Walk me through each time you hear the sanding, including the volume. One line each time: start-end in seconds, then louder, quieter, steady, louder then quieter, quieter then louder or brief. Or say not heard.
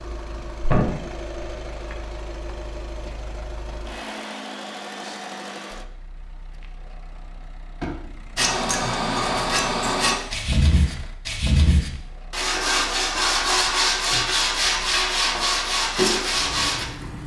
8.3-16.9 steady.